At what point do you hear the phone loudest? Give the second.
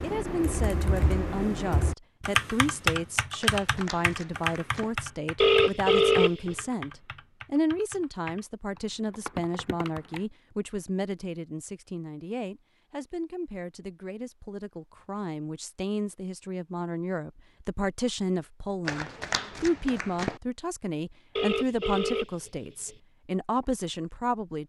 6 s.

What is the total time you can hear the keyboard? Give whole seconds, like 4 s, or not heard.
10 s.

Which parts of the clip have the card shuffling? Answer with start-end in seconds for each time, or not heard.
3.4-5.0, 18.9-20.4.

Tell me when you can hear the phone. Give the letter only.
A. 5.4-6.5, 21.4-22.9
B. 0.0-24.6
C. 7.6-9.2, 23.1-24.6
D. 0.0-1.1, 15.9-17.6
A.